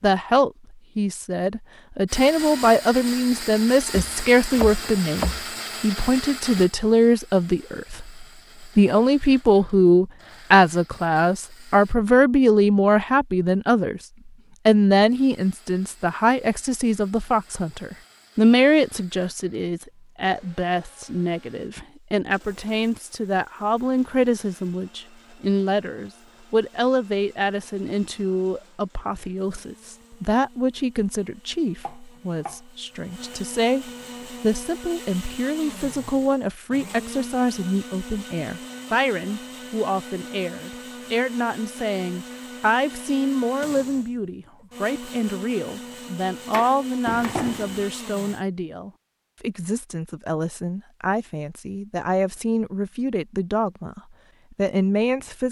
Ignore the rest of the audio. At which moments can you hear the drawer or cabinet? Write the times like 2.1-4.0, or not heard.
47.0-47.9.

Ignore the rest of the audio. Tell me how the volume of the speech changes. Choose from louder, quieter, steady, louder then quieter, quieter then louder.
quieter.